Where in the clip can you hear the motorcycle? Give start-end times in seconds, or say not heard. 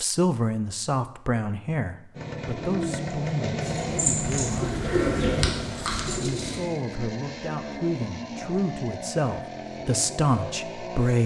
2.1-11.2.